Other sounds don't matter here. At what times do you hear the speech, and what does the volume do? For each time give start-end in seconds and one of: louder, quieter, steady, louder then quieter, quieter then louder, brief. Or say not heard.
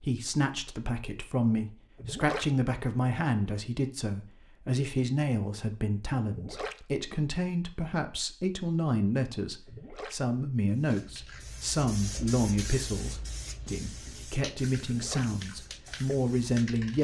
0.0-16.9 steady.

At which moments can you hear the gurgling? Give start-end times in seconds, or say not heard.
1.9-2.5, 6.2-6.8, 9.7-10.2, 14.8-15.3.